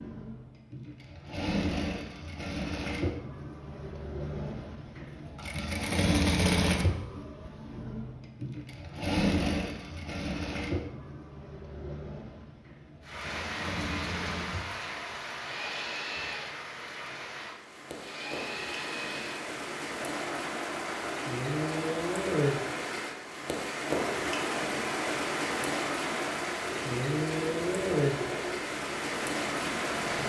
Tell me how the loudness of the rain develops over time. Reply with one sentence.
The loudness of the rain goes up.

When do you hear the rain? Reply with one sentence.
You can hear the rain from 13.0 to 30.2 s.